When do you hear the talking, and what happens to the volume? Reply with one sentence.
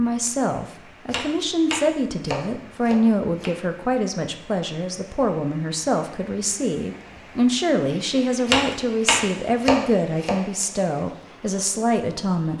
You can hear the talking from 0.0 to 12.5 s, at a steady volume.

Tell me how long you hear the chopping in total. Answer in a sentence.
The chopping can be heard for 4 seconds in total.